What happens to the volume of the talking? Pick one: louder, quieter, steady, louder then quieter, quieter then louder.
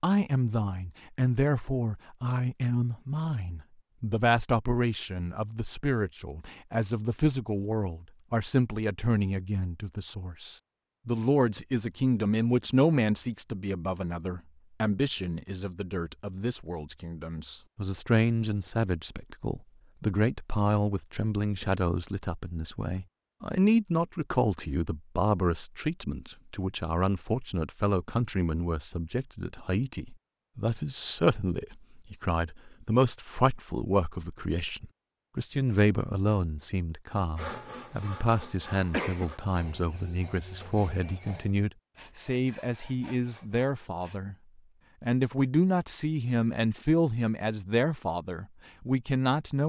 steady.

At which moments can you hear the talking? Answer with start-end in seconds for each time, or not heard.
0.0-44.4, 45.0-49.6.